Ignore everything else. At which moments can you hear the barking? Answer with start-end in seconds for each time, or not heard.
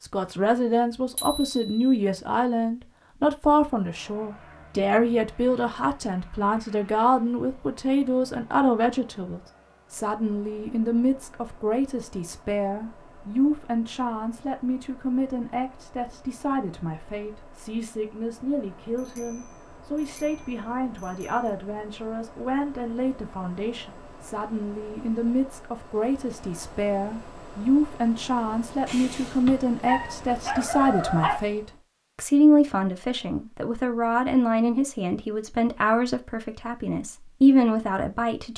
29.9-31.4.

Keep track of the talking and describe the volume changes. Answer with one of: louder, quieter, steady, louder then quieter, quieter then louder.
quieter then louder.